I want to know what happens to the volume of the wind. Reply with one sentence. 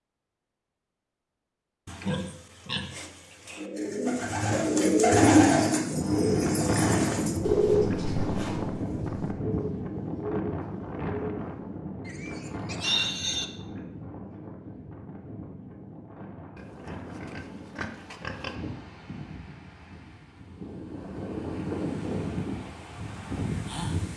The volume of the wind goes down, then up.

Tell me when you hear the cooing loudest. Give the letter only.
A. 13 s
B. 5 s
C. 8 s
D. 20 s
B.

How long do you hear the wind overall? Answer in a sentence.
The wind can be heard for 18 seconds in total.